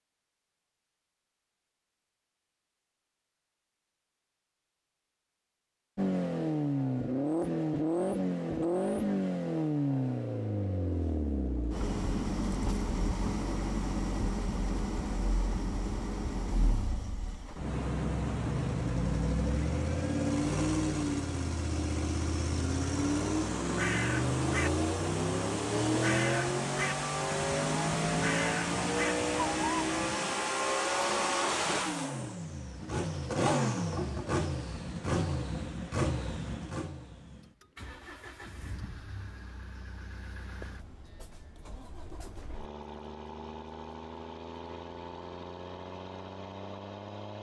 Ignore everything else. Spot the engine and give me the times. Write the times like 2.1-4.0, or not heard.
6.0-47.3.